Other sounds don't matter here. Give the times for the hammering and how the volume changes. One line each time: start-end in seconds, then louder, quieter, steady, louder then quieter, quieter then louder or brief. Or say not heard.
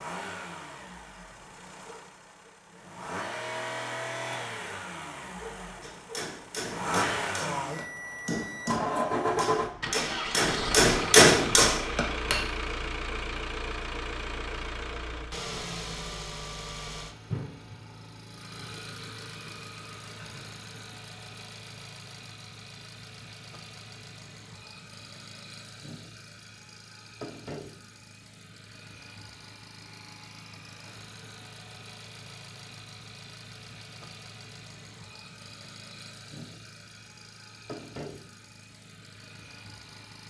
5.8-12.4 louder.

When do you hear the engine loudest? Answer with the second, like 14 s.
9 s.